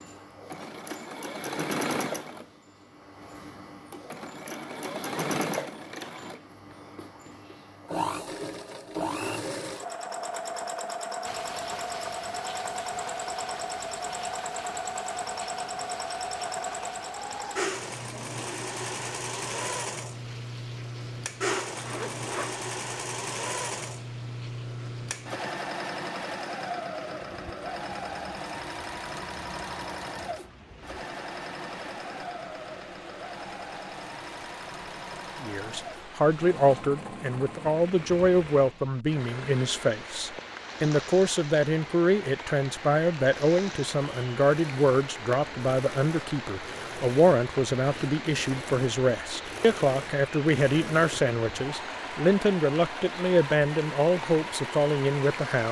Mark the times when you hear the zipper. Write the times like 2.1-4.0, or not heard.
21.5-22.6.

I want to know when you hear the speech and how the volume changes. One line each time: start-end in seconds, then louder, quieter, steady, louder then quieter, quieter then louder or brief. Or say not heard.
35.4-55.6 steady.